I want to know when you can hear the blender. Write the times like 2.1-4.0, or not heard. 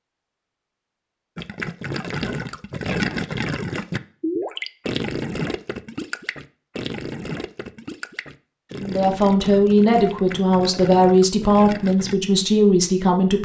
not heard.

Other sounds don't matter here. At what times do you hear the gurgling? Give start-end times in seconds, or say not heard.
1.4-12.2.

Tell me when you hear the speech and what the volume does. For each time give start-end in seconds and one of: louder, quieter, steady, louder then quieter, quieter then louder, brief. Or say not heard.
8.8-13.3 steady.